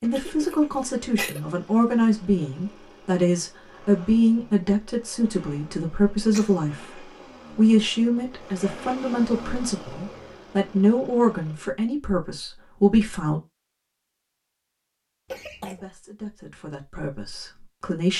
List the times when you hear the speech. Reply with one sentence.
The speech can be heard from 0.0 to 13.4 s and from 15.6 to 18.1 s.